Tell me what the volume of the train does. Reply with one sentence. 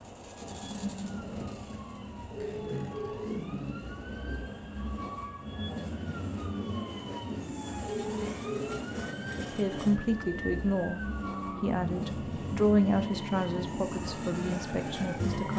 The volume of the train stays about the same.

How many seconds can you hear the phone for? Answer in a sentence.
The phone can be heard for 2 seconds in total.